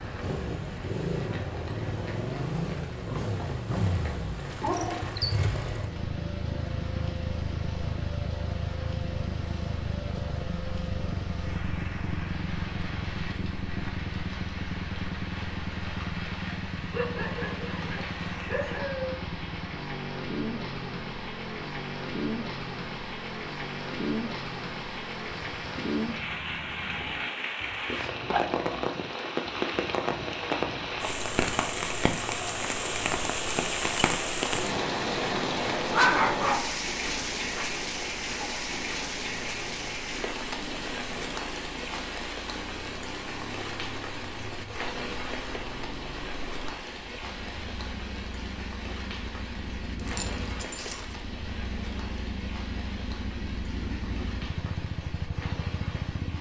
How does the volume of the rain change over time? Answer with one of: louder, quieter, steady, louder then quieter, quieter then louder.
louder then quieter.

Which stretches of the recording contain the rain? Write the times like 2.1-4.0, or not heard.
0.0-56.3.